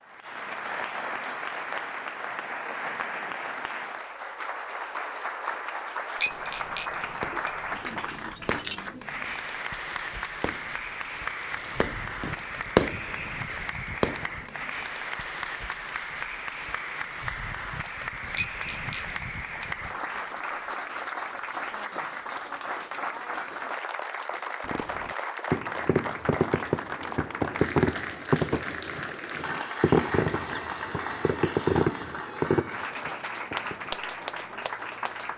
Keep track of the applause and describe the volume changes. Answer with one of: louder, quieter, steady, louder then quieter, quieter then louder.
steady.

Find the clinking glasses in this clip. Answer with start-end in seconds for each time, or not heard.
6.2-8.8, 18.4-20.1.